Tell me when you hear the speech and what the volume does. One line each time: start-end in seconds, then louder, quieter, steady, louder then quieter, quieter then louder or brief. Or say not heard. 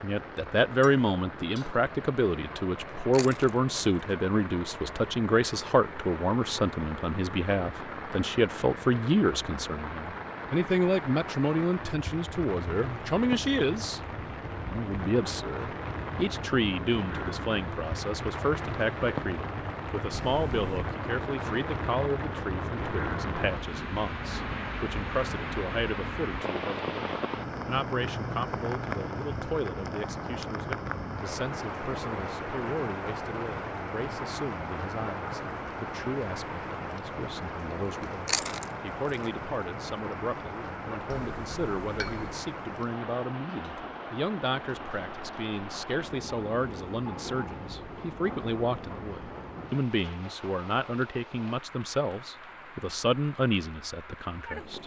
0.0-14.0 steady
14.6-54.8 quieter then louder.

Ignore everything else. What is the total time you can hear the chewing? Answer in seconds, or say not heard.
2 s.